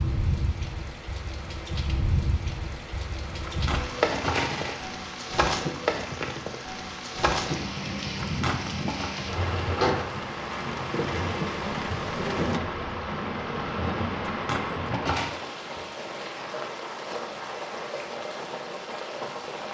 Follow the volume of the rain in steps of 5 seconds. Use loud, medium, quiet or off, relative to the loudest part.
loud, loud, loud, medium.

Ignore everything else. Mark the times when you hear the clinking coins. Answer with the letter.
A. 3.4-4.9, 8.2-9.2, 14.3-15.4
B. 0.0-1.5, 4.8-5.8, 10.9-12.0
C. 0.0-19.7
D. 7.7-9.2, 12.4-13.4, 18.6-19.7
A.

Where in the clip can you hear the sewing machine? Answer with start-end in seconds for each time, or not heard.
not heard.